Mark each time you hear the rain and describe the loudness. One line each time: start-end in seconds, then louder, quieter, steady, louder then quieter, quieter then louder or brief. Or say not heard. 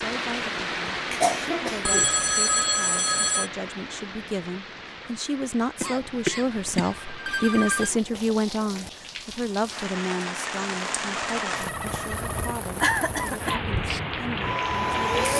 0.0-15.3 quieter then louder.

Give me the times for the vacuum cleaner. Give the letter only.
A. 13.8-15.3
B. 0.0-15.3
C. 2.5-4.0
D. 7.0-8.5
A.